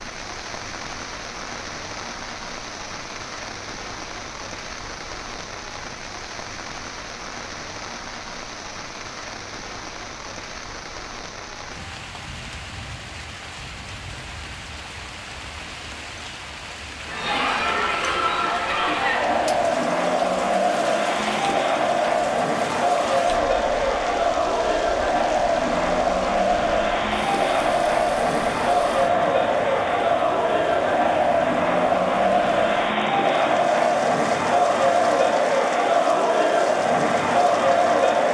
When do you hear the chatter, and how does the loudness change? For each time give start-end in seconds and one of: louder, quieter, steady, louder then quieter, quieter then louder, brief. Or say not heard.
17.1-38.3 steady.